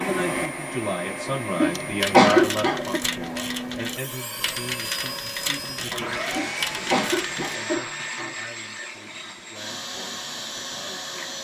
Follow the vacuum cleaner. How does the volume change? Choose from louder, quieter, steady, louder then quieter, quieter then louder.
steady.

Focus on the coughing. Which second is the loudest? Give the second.
2 s.